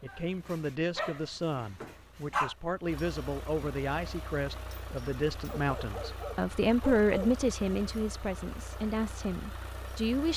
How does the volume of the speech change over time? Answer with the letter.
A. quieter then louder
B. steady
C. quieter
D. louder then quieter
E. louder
D.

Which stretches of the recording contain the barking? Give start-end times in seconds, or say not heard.
0.1-2.5, 5.5-7.5.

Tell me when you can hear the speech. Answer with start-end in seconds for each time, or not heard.
0.0-10.3.